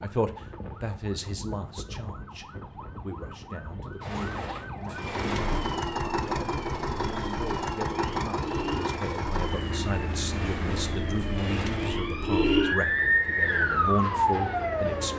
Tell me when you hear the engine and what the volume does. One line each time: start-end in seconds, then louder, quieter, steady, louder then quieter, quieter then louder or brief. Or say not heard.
4.8-15.1 quieter.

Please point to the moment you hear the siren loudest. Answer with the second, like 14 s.
13 s.